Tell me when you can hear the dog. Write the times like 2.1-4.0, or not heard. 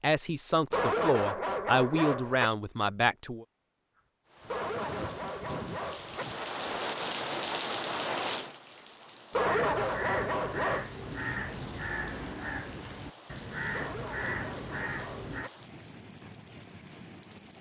0.7-2.5, 4.5-6.2, 9.3-10.9, 13.7-15.5.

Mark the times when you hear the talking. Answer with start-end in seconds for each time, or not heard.
0.0-3.5.